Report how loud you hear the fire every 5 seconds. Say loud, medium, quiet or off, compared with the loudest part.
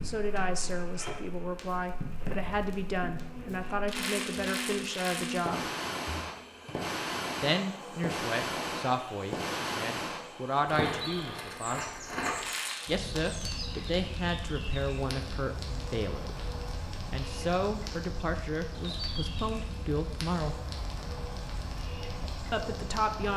medium, loud, loud, medium, medium.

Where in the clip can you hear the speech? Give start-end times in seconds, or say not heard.
0.1-5.7, 7.4-11.8, 12.8-16.4, 17.1-20.6, 22.4-23.3.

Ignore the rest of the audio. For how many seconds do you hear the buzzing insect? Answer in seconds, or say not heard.
23 s.